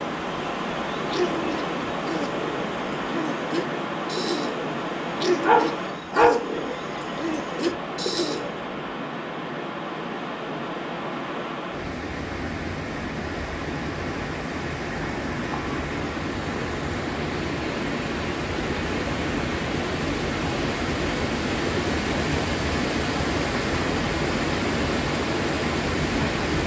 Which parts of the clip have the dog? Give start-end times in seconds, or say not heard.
5.4-6.6.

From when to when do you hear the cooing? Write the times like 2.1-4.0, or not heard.
1.0-8.6.